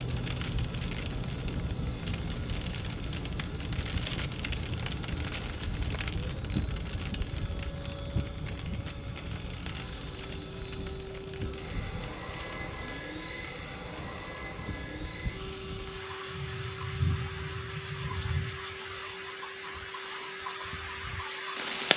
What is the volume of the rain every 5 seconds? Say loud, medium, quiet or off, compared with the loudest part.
loud, loud, medium, loud, loud.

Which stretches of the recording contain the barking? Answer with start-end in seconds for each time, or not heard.
not heard.